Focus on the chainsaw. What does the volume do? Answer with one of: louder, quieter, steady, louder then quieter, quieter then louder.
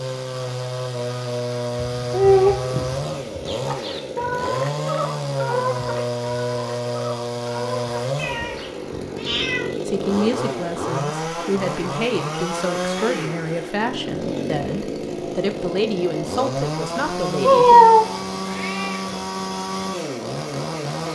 steady.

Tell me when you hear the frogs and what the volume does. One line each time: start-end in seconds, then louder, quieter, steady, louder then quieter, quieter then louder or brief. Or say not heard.
not heard.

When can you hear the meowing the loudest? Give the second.
18 s.